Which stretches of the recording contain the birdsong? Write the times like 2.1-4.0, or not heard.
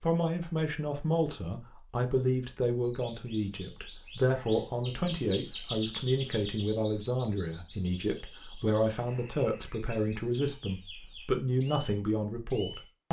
2.8-12.9.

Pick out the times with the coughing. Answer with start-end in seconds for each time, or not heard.
not heard.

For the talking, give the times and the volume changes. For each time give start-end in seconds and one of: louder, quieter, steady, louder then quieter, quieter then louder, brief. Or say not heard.
0.0-13.0 steady.